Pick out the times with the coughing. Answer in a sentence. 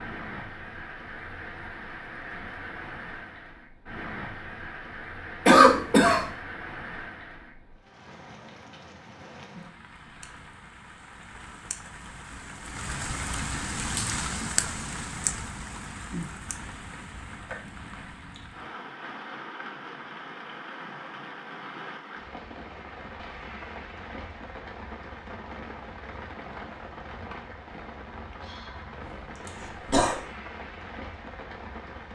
The coughing can be heard from 5.5 to 6.2 s and from 29.4 to 30.2 s.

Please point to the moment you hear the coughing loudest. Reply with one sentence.
The volume of the coughing peaks at 6 seconds.